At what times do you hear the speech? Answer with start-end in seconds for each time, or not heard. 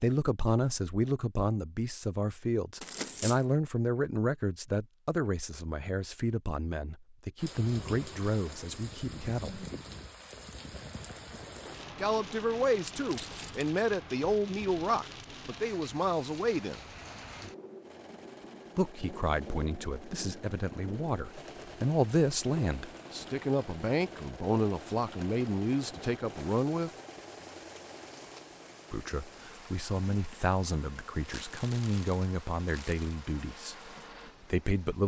0.0-9.7, 11.9-16.8, 18.8-26.9, 28.9-33.9, 34.5-35.0.